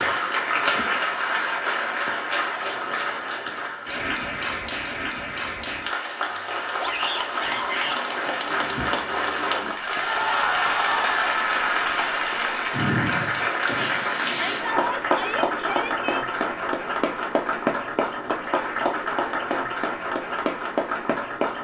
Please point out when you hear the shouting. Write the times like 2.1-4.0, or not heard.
6.8-8.0, 14.2-16.2.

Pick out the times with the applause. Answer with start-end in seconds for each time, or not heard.
0.0-21.6.